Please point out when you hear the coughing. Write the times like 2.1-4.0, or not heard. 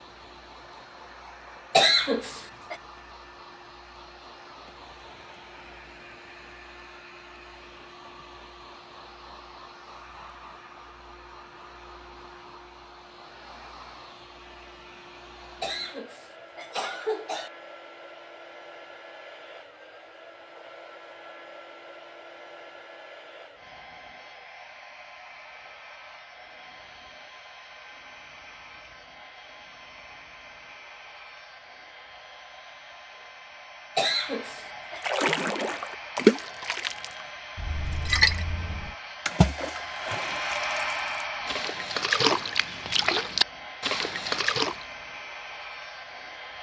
1.7-2.8, 15.6-17.5, 34.0-35.0.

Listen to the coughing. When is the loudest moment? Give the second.
2 s.